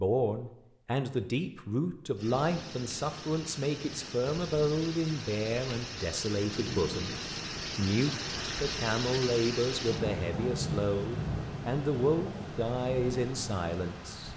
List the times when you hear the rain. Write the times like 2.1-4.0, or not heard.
2.1-14.3.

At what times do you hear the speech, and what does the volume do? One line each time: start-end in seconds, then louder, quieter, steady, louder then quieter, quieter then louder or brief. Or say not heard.
0.0-14.3 steady.